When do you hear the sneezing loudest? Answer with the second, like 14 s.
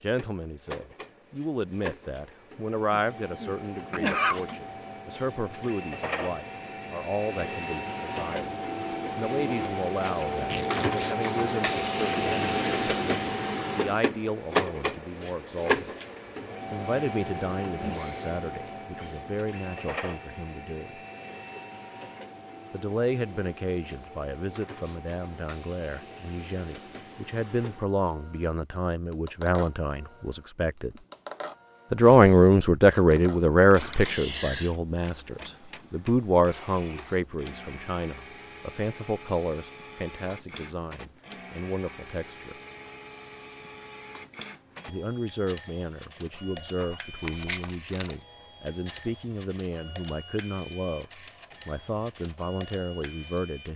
4 s.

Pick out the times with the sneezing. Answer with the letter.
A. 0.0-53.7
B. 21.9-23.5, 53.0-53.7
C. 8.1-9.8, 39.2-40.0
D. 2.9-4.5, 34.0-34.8
D.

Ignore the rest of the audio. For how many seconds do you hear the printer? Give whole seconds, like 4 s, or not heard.
54 s.